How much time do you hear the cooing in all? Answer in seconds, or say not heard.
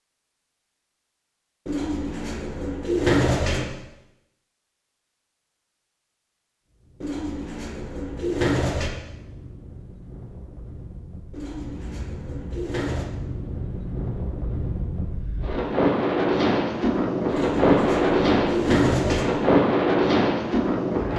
8 s.